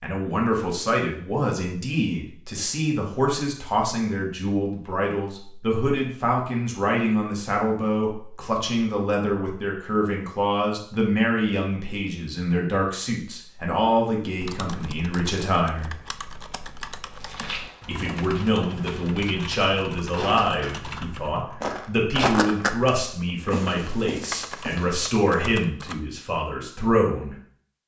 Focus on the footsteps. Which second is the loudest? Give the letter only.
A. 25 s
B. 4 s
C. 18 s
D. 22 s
D.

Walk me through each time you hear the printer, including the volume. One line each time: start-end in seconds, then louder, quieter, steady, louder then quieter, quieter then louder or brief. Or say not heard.
not heard.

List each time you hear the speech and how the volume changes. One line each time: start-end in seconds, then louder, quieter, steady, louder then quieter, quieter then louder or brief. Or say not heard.
0.0-15.9 steady
17.9-27.4 steady.